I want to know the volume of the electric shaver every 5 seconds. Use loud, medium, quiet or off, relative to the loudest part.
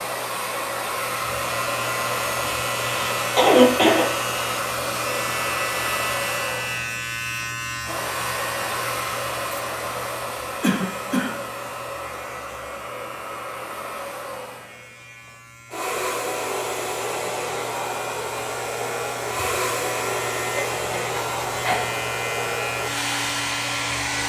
loud, loud, medium, medium, loud.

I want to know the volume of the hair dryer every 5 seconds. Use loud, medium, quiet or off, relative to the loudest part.
loud, loud, medium, loud, loud.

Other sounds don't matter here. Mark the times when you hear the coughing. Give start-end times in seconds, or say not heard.
2.9-4.0, 10.6-11.4, 20.6-21.9.